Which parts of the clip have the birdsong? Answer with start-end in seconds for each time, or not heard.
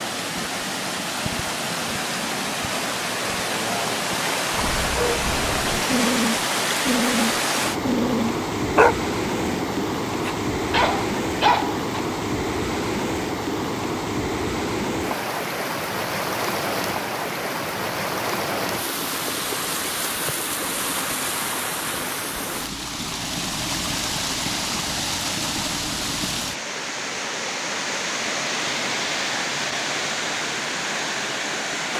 not heard.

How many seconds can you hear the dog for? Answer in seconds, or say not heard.
7 s.